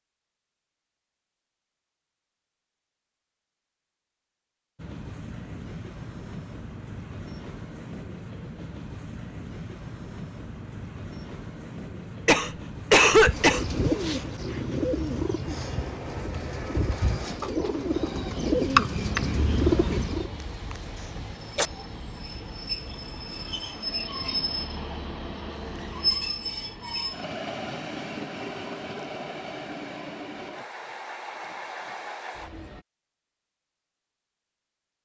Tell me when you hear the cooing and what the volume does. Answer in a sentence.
The cooing can be heard from 13.1 to 20.3 s, getting quieter then louder.